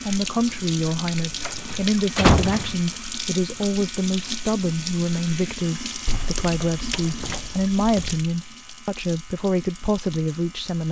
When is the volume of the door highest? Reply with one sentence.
The loudest moment of the door is at 2 seconds.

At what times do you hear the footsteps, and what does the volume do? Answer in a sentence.
You can't hear the footsteps here.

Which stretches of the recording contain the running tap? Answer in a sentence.
The running tap can be heard from 0.0 to 10.8 s.